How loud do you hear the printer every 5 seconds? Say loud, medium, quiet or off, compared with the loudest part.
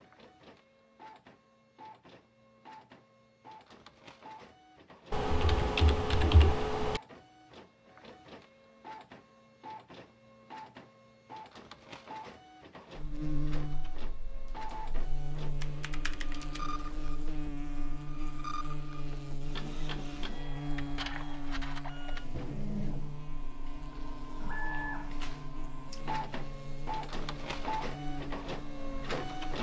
quiet, medium, medium, medium, loud, loud.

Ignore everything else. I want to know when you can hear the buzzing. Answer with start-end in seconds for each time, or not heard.
12.9-29.5.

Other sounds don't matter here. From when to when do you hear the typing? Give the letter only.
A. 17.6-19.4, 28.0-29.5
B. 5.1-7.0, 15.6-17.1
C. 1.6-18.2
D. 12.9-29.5
B.